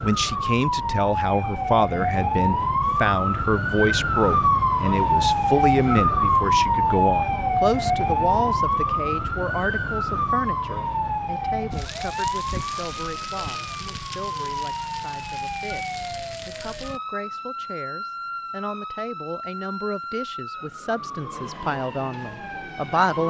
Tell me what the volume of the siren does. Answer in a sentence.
The volume of the siren goes down.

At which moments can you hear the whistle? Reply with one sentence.
The whistle can't be heard in this clip.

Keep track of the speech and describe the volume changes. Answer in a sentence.
The volume of the speech goes down, then up.